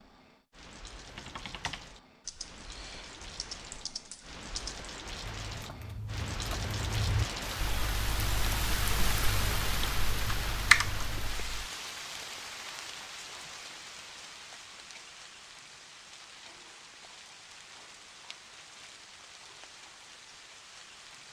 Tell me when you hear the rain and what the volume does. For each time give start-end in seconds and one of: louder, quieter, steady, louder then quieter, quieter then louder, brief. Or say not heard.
0.0-21.2 louder then quieter.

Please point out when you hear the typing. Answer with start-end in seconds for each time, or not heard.
1.0-11.7.